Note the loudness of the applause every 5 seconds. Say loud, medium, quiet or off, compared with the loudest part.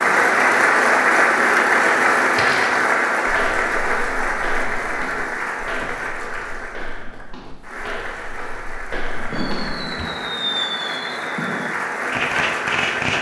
loud, quiet, medium.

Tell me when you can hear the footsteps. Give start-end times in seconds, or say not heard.
2.1-10.1.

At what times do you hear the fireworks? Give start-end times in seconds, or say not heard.
9.3-13.1.